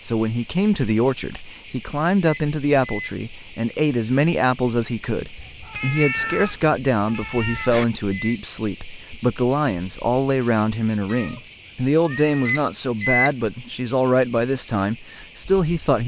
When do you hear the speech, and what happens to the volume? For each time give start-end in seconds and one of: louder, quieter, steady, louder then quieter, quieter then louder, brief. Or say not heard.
0.0-16.0 steady.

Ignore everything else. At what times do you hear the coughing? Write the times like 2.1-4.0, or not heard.
not heard.